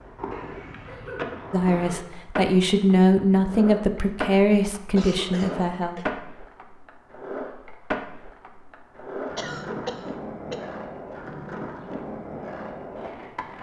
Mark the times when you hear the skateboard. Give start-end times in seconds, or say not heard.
0.0-13.5.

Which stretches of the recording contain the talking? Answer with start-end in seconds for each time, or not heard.
1.5-6.2.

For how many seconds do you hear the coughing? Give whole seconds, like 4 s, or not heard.
4 s.